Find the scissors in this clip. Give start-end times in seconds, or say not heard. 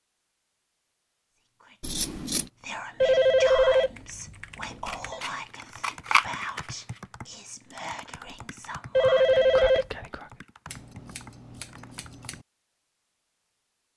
1.8-2.5, 4.8-6.7, 10.7-12.4.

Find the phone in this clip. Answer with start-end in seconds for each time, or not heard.
3.0-5.2, 8.9-9.8.